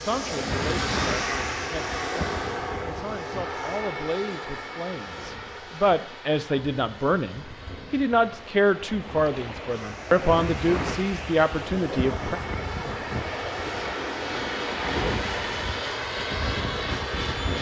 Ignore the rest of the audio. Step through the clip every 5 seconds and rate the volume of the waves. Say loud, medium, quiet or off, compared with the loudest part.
loud, medium, loud, loud.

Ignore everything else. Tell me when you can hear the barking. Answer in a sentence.
You can't hear the barking here.